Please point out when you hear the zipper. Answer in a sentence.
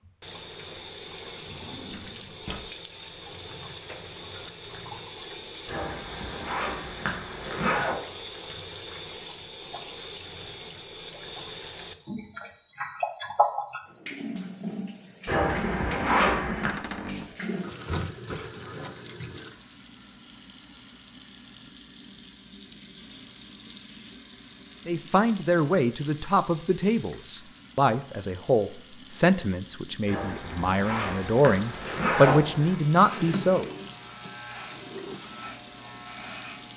The zipper can be heard from 5.7 to 8.0 s, from 15.2 to 16.7 s and from 30.1 to 32.8 s.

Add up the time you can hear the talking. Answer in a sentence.
The talking can be heard for 9 seconds in total.